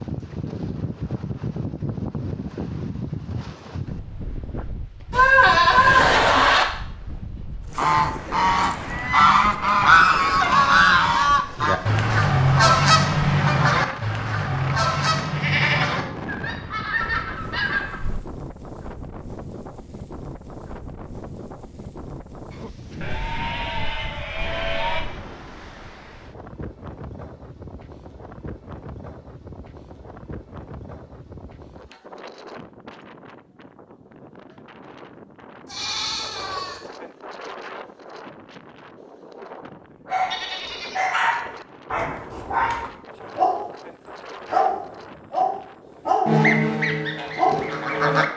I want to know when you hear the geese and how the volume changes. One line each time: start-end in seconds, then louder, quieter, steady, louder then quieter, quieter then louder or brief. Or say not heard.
7.8-18.2 quieter
46.2-48.2 brief.